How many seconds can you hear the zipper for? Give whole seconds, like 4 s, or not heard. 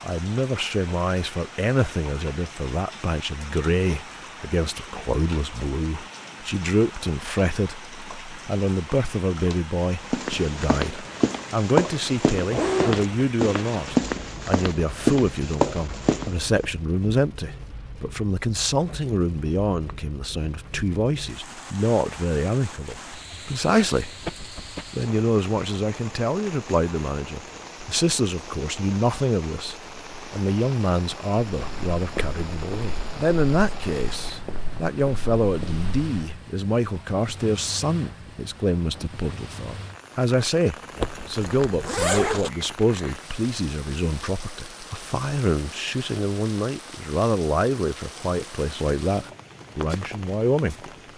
4 s.